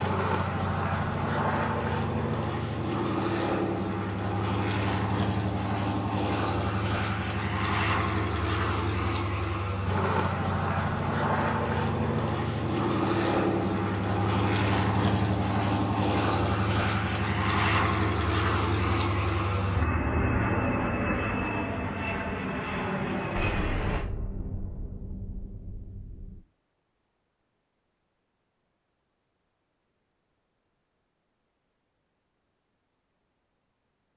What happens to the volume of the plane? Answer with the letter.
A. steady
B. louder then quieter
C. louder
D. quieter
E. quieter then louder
A.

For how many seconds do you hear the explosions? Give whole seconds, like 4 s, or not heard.
3 s.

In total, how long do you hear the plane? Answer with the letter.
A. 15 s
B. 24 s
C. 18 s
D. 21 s
B.